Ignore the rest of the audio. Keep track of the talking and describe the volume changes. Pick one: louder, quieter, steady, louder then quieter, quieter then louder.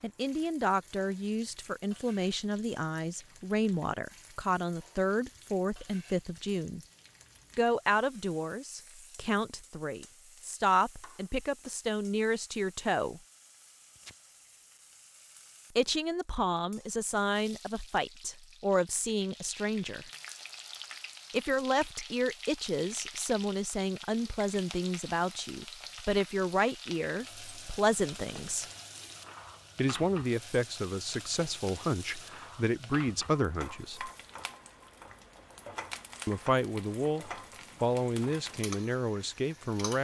steady.